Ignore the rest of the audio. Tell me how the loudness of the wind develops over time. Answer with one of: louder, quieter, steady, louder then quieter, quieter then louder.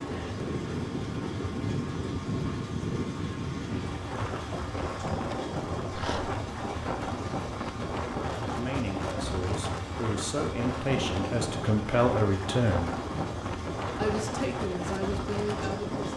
steady.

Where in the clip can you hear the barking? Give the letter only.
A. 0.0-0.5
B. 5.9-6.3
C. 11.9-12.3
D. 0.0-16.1
B.